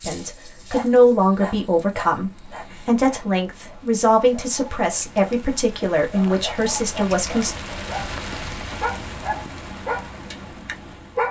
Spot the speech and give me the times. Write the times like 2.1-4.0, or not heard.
0.0-7.5.